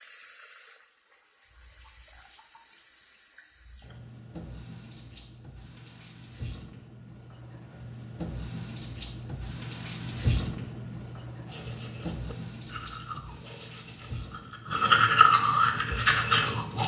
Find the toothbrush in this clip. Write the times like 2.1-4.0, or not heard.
11.4-16.8.